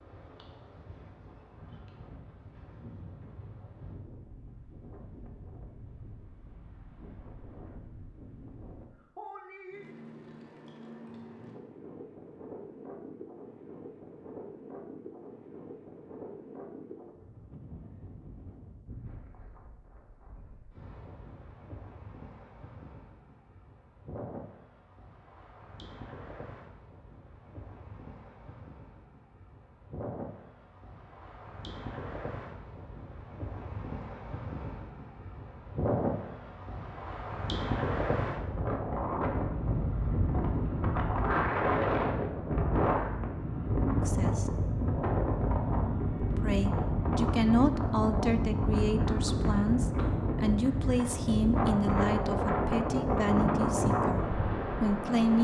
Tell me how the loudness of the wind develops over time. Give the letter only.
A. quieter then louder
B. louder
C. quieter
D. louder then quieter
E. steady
B.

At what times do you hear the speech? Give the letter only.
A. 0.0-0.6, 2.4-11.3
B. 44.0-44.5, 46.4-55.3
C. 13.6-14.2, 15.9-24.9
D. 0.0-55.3
B.